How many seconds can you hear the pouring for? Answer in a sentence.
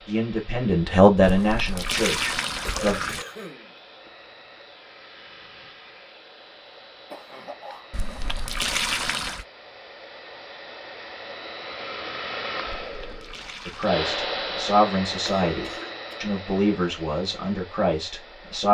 You can hear the pouring for 5 seconds altogether.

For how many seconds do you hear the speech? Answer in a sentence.
You can hear the speech for 8 seconds altogether.